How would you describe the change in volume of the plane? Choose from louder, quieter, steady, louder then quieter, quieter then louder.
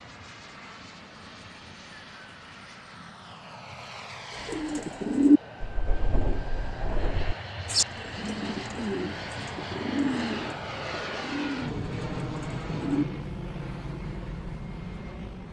louder.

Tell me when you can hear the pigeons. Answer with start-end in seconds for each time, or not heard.
4.5-13.1.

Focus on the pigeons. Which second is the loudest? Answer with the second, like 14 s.
5 s.